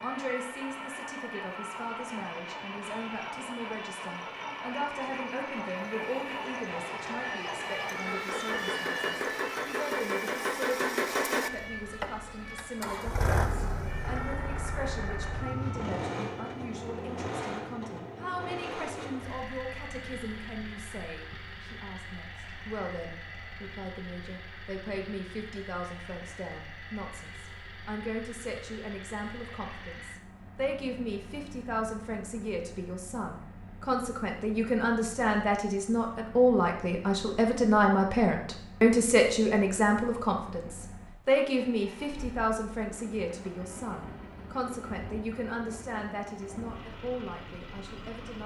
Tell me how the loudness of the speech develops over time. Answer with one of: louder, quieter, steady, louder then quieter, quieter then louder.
louder.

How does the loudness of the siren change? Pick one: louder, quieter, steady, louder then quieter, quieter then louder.
louder then quieter.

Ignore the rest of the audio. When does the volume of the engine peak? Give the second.
11 s.